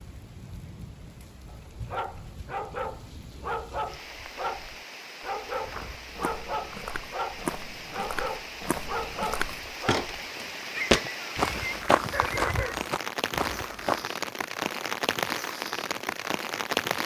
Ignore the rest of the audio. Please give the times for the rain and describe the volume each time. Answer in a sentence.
The rain can be heard from 0.0 to 17.0 s, getting louder.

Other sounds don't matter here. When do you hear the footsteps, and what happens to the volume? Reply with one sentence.
The footsteps can be heard from 5.5 to 14.1 s, getting louder then quieter.